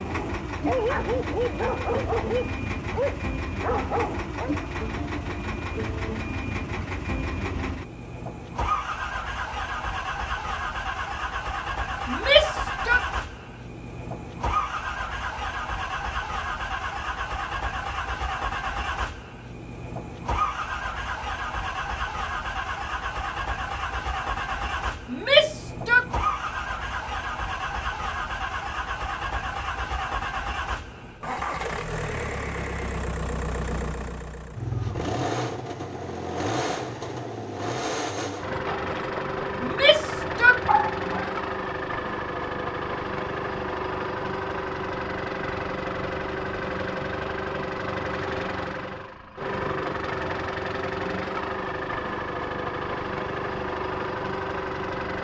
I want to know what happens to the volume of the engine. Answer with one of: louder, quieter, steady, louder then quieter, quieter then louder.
steady.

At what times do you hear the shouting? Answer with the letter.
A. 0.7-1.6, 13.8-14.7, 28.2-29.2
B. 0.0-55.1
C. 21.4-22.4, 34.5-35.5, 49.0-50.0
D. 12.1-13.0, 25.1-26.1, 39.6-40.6
D.